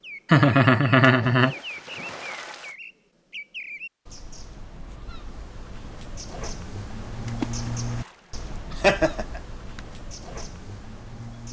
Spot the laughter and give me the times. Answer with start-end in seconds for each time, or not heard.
0.3-1.6, 8.7-9.8.